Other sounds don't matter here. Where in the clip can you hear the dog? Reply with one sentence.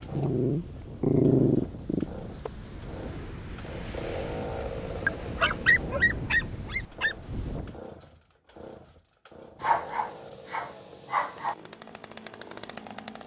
You can hear the dog from 0.1 to 2.5 s, from 5.0 to 7.2 s and from 9.6 to 11.6 s.